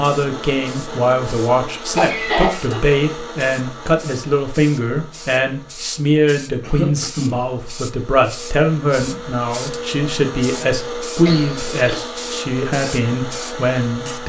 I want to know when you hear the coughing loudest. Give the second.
2 s.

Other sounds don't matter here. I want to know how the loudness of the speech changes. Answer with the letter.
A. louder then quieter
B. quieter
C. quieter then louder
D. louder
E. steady
E.